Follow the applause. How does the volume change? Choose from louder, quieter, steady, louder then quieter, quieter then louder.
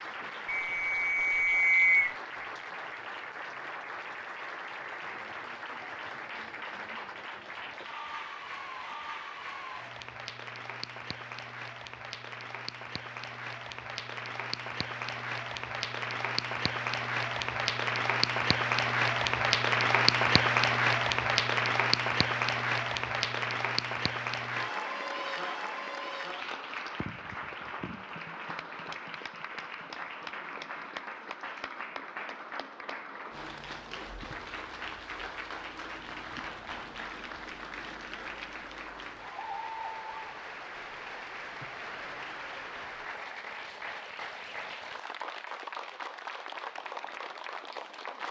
louder then quieter.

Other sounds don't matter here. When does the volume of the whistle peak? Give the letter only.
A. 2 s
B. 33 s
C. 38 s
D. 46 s
A.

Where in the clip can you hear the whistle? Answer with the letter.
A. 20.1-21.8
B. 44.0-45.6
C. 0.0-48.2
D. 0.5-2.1
D.